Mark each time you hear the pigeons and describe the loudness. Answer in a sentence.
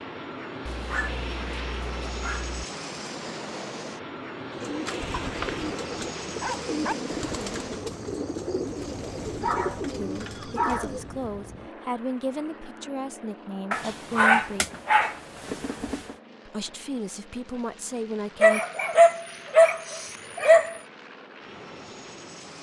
You can hear the pigeons from 4.5 to 11.1 s, at a steady volume.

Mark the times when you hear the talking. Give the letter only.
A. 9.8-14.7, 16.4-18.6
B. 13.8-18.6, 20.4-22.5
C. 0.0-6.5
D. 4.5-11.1
A.